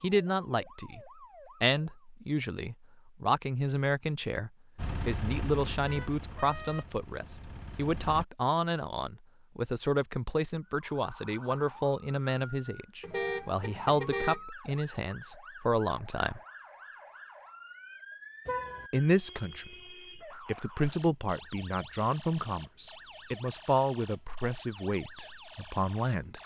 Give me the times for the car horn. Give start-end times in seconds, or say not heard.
5.8-6.9, 13.0-14.4, 18.4-18.9.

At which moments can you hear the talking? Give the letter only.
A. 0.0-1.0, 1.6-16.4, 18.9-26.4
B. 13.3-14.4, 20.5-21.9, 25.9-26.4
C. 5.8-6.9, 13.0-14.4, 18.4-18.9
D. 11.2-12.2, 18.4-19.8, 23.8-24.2
A.